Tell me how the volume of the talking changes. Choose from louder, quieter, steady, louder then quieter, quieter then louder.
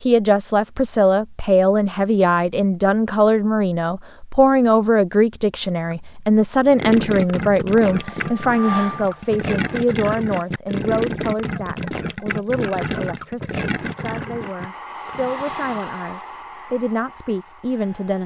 quieter.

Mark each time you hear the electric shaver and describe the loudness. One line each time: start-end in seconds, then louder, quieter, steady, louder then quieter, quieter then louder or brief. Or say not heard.
not heard.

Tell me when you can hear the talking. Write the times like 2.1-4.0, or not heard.
0.0-18.2.